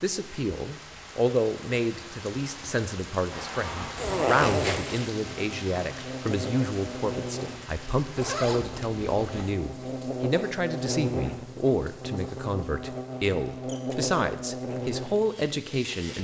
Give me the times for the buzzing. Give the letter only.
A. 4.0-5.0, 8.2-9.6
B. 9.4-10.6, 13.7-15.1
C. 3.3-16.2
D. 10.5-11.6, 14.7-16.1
C.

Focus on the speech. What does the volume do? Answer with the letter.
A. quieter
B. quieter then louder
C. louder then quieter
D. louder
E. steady
E.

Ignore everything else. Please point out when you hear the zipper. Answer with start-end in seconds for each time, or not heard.
4.0-5.0, 8.2-9.6.